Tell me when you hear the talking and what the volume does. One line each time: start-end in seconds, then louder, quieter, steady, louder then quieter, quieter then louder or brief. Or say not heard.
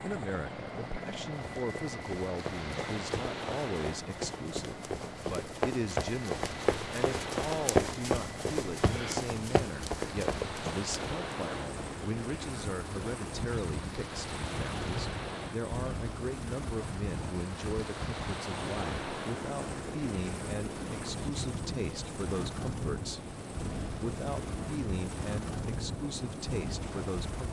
0.0-27.4 steady.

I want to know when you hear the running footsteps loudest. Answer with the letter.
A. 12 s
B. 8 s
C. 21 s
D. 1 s
B.